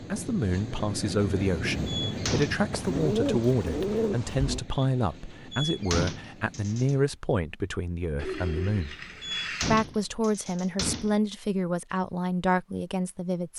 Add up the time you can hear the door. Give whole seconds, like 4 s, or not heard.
4 s.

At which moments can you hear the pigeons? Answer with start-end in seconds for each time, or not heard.
2.7-4.7, 8.2-9.8.